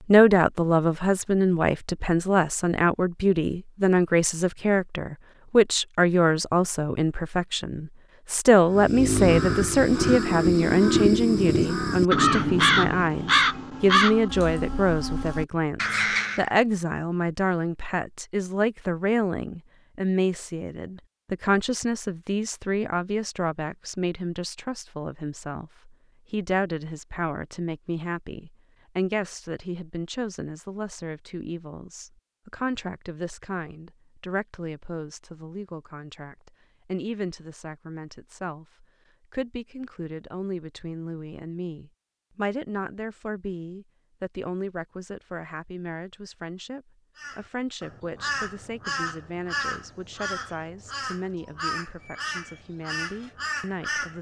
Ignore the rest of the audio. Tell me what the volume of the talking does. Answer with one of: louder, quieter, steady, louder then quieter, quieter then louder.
quieter.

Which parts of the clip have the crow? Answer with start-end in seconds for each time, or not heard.
8.7-16.4, 47.1-54.1.